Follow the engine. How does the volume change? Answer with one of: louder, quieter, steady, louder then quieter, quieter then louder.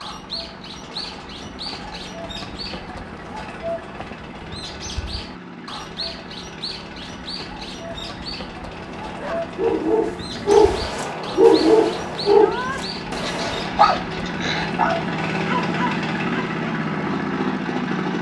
louder.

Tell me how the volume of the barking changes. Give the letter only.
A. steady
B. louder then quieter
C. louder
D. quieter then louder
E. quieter
E.